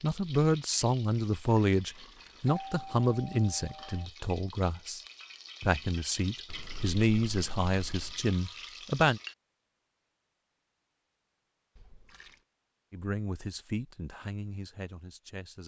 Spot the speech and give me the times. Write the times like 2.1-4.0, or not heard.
0.0-5.0, 5.6-9.2, 12.9-15.6.